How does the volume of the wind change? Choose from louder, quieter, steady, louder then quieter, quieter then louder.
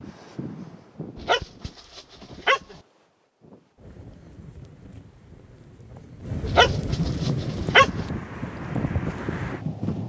quieter then louder.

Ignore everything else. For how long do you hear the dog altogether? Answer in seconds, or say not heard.
3 s.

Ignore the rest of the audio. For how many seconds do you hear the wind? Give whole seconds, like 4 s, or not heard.
10 s.